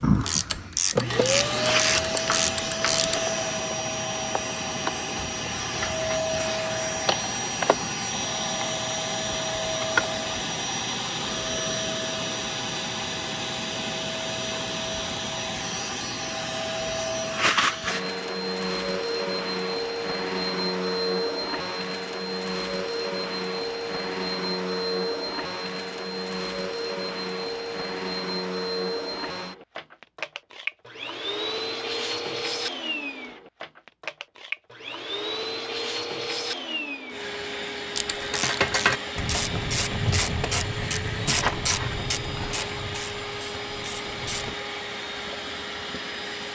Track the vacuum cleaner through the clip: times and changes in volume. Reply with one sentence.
The vacuum cleaner can be heard from 0.0 to 46.4 s, getting quieter.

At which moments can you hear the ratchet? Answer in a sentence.
The ratchet can be heard from 0.0 to 3.2 s and from 38.0 to 44.5 s.